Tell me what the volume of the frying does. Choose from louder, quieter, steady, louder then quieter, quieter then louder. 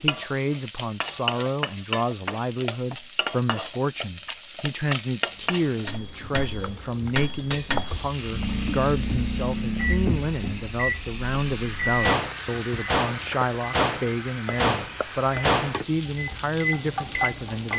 steady.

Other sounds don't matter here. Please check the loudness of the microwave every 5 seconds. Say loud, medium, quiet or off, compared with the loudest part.
off, loud, loud, loud.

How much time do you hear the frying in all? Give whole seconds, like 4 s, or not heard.
18 s.